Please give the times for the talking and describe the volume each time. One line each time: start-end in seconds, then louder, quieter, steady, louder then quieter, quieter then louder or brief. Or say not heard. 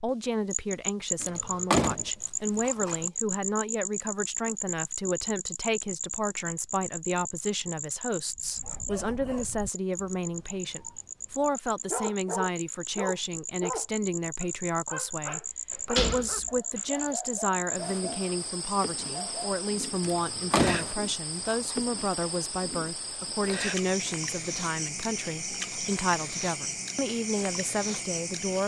0.0-28.6 steady.